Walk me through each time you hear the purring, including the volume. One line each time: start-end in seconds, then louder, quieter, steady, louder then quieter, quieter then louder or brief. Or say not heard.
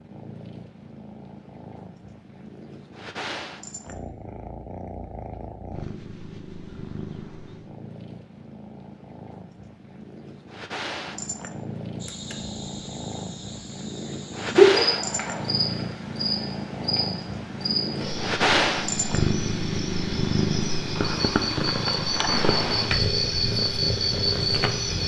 0.0-25.0 louder.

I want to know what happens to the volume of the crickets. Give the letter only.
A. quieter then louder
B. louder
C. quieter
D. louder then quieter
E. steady
A.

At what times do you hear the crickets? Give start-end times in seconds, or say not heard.
12.0-25.0.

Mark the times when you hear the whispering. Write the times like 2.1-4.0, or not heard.
not heard.